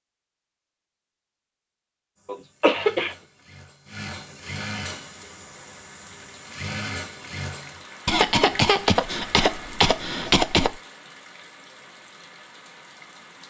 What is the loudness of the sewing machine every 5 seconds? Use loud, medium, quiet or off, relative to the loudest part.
loud, loud, off.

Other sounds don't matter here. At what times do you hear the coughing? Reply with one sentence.
You can hear the coughing from 2.2 to 3.1 s and from 8.1 to 10.8 s.